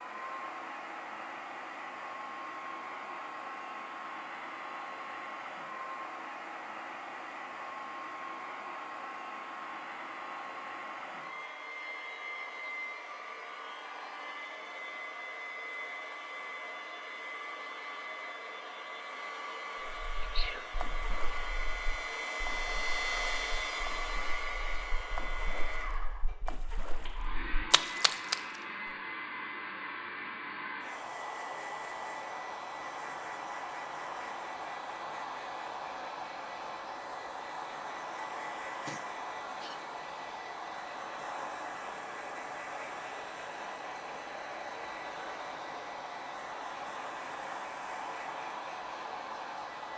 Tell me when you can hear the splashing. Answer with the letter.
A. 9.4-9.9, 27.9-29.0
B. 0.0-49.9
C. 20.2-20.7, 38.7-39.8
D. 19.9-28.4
D.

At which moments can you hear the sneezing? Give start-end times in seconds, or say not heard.
20.2-20.7, 38.7-39.8.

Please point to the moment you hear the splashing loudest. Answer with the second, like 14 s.
28 s.